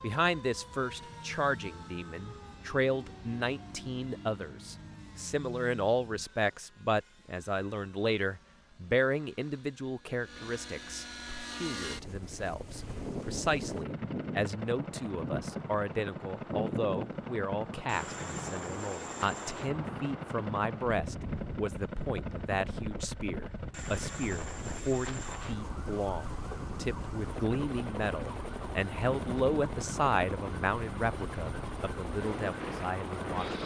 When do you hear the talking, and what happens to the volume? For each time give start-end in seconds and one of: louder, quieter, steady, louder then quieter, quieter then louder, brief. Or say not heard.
0.0-33.6 steady.